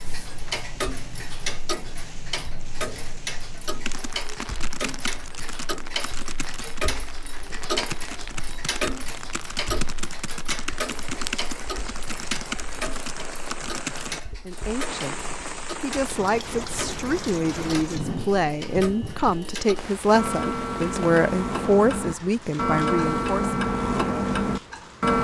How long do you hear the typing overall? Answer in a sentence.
You can hear the typing for 10 seconds altogether.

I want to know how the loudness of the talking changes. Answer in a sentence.
The loudness of the talking goes up.